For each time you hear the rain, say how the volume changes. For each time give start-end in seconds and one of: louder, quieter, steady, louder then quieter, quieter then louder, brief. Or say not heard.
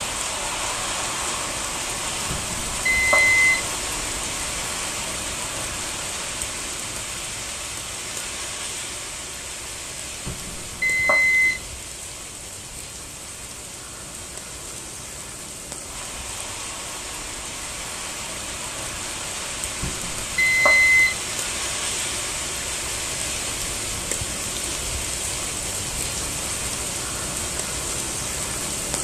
0.0-28.9 quieter then louder.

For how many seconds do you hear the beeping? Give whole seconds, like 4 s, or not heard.
4 s.